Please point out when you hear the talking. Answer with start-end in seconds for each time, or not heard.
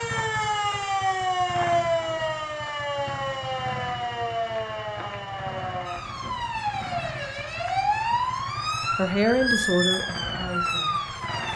8.9-11.1.